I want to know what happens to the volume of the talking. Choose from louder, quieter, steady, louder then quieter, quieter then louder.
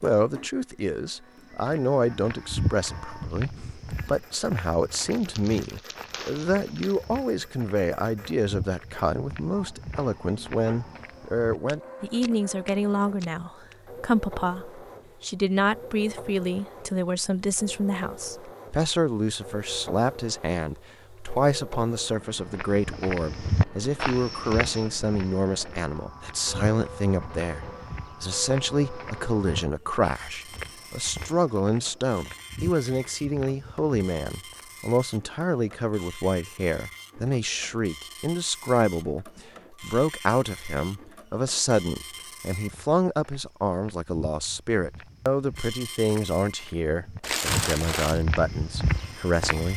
steady.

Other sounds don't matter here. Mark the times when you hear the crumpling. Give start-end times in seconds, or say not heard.
4.9-7.0, 47.2-48.2.